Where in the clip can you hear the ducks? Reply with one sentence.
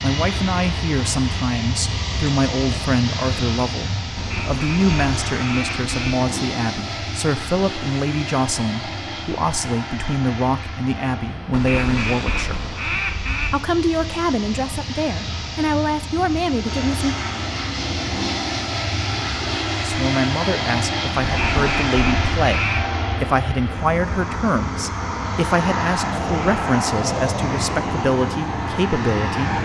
You can hear the ducks from 4.2 to 6.2 s, from 11.5 to 13.6 s and from 21.2 to 22.9 s.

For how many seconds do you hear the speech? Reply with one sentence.
You can hear the speech for 26 seconds altogether.